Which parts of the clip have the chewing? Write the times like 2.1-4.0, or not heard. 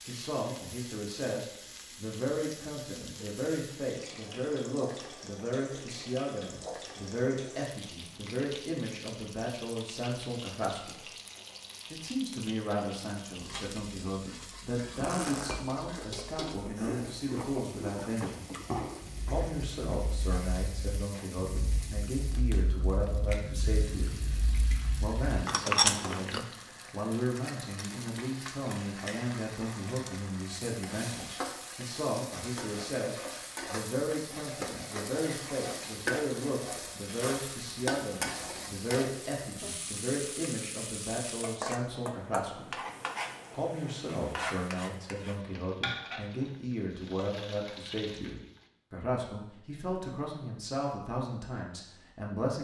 14.8-26.4.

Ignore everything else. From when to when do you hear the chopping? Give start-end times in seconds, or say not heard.
not heard.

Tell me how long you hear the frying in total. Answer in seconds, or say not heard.
49 s.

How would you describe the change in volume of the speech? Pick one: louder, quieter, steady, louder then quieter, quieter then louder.
steady.